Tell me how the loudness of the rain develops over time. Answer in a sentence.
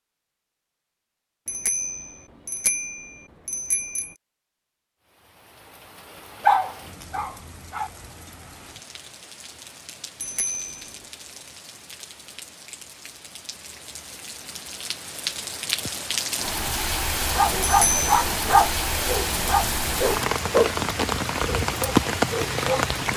The loudness of the rain goes up.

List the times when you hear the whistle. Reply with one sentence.
The whistle can't be heard in this clip.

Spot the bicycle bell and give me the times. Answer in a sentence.
The bicycle bell can be heard from 1.4 to 4.2 s, from 10.2 to 11.0 s and from 17.6 to 18.1 s.